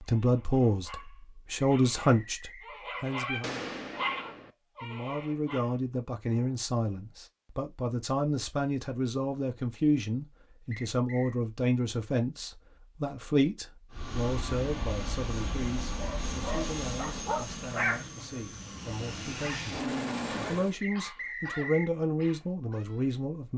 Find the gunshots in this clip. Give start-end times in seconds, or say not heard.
3.4-4.5.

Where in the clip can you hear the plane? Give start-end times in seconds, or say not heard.
13.9-20.8.